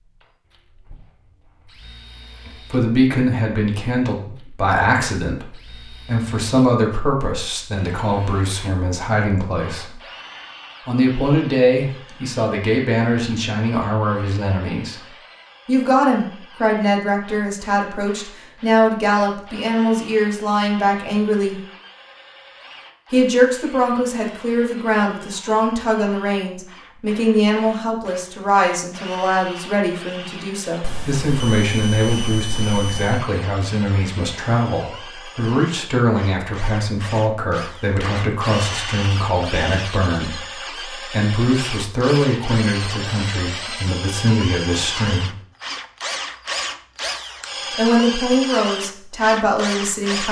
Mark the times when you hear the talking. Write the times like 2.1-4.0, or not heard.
2.7-10.0, 10.8-21.6, 23.1-45.3, 47.8-50.2.